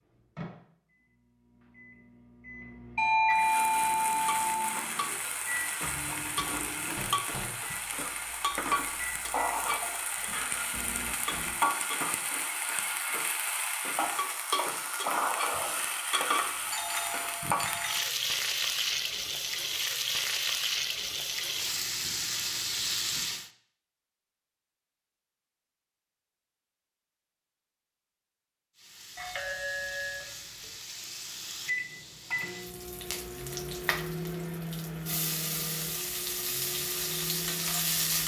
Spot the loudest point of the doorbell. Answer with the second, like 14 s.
3 s.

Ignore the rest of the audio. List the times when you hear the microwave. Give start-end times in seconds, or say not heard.
0.0-11.6, 31.6-38.2.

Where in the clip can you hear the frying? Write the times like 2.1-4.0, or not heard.
3.3-23.5, 28.8-38.2.